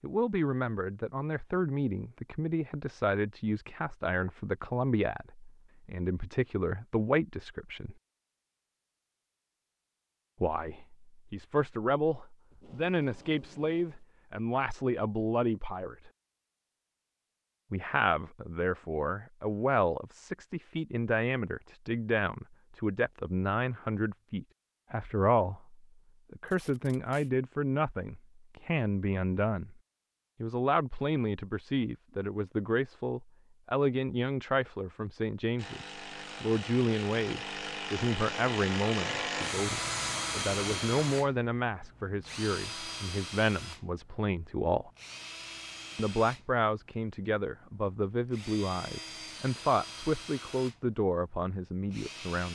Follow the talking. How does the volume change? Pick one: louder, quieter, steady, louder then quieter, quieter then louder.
steady.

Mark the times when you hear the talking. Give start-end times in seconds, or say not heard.
0.0-8.0, 10.4-16.1, 17.7-29.8, 30.4-44.9, 46.0-52.5.